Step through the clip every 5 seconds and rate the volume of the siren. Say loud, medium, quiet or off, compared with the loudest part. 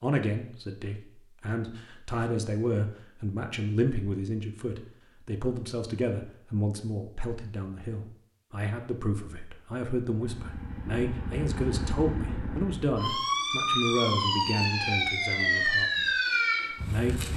off, off, loud, loud.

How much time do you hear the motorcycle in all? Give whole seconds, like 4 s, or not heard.
3 s.